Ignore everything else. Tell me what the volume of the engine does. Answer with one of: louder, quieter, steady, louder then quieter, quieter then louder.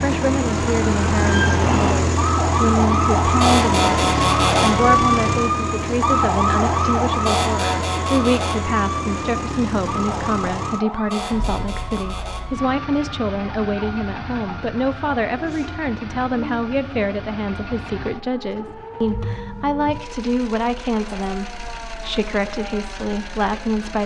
quieter.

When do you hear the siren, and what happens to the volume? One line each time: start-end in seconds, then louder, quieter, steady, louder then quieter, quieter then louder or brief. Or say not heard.
0.0-24.0 quieter.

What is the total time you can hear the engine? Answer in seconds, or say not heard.
24 s.